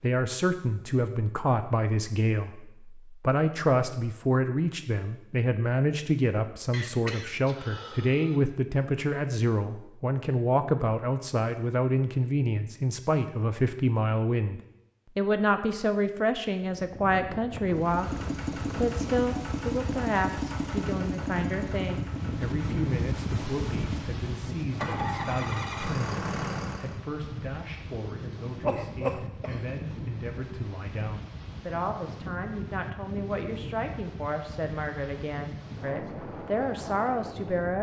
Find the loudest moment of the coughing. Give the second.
29 s.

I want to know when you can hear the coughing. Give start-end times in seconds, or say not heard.
6.7-8.4, 28.6-29.6.